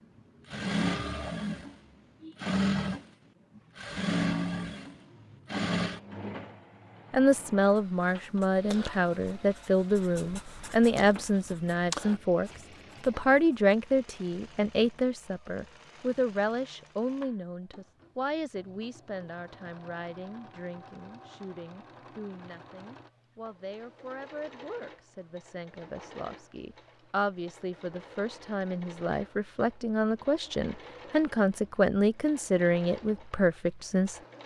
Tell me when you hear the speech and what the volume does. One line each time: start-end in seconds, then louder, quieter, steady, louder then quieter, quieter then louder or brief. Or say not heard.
7.1-34.2 quieter then louder.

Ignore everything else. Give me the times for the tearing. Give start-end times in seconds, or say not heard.
not heard.